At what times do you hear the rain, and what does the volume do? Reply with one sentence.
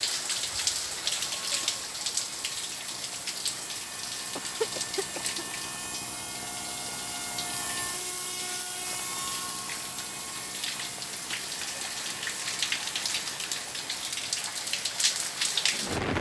The rain can be heard from 0.0 to 16.1 s, getting quieter then louder.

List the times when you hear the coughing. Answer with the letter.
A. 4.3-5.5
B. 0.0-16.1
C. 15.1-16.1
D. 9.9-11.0
A.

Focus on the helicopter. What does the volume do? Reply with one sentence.
The loudness of the helicopter goes up, then down.